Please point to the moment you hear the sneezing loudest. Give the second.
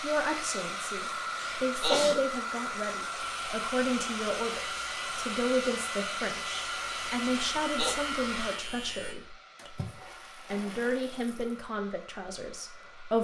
2 s.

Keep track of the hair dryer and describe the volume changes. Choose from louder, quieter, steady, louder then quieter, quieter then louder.
quieter.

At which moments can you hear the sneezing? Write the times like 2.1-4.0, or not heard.
1.4-2.1, 7.3-8.0.